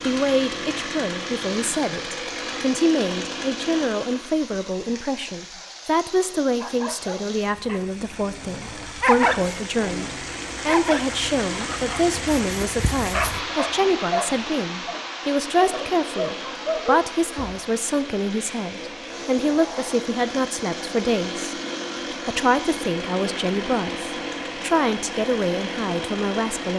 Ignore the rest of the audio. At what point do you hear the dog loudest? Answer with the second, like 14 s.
9 s.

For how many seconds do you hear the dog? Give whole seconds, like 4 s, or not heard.
11 s.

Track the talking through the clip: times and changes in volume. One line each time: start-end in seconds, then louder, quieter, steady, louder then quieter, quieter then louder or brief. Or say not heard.
0.1-26.7 steady.